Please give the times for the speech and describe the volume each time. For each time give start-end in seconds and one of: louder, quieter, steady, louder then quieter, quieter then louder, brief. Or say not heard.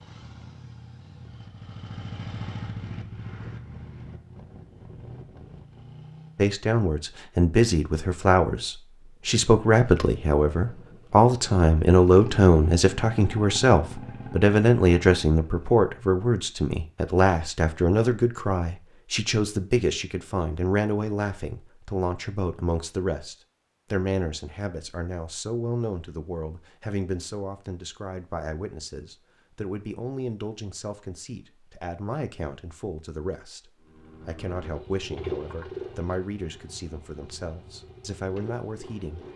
6.3-39.2 quieter.